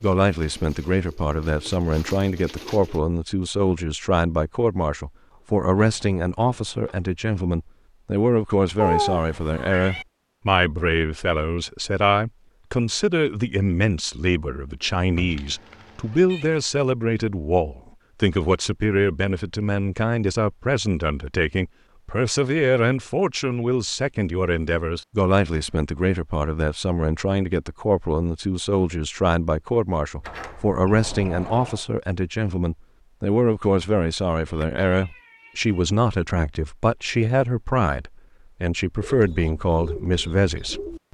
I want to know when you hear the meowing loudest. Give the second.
9 s.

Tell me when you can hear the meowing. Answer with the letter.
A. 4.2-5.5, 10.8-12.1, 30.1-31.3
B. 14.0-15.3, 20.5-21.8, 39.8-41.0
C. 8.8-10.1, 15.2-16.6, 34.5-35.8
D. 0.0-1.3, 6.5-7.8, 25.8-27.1
C.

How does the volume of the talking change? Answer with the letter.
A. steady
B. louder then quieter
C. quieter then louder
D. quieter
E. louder
A.